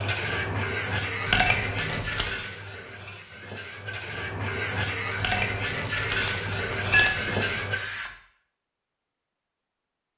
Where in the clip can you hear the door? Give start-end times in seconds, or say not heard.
not heard.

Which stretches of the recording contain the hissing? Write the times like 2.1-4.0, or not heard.
0.0-8.1.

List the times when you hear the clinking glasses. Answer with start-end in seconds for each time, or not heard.
1.2-2.3, 5.2-7.5.